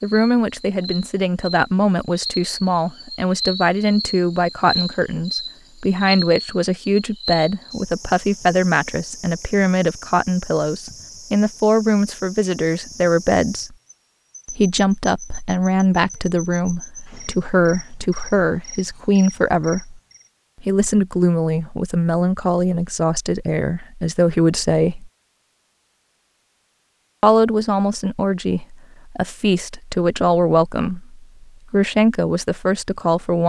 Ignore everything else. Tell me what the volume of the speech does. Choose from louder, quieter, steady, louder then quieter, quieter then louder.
steady.